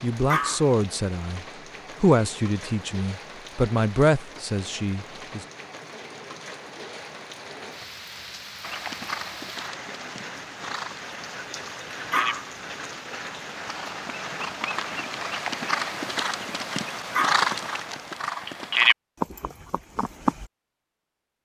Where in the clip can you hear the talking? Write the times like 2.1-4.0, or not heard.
0.0-5.5.